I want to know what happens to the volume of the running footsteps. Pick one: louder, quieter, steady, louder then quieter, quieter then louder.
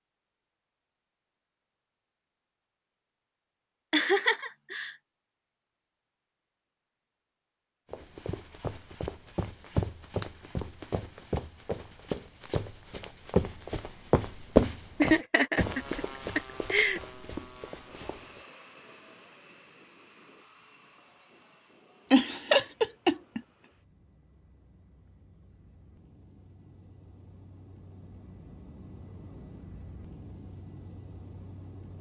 louder then quieter.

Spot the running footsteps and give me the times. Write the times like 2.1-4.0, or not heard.
7.9-18.4.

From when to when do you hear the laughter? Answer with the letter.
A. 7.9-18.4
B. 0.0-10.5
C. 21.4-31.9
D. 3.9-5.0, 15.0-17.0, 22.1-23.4
D.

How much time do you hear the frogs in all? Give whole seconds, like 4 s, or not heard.
not heard.